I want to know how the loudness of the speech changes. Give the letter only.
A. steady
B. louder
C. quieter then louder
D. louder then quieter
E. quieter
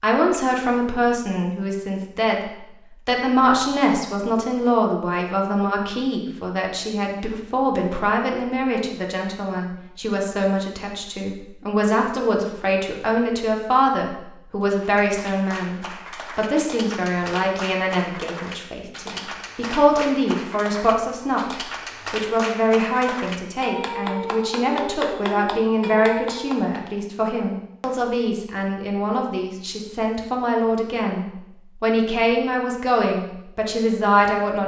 A.